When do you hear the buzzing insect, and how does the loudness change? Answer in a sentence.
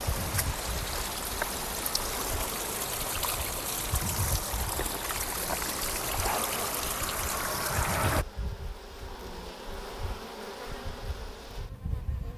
You can hear the buzzing insect from 0.0 to 12.3 s, at a steady volume.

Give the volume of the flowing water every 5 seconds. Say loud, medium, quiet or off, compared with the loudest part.
loud, loud, off.